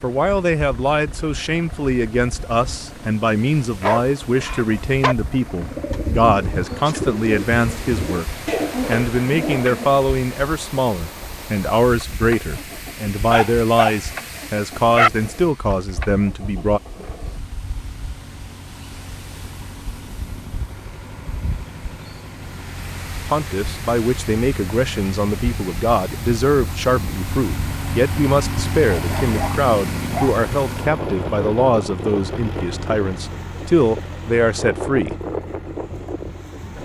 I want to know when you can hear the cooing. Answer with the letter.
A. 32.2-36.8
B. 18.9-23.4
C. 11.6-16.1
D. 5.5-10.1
D.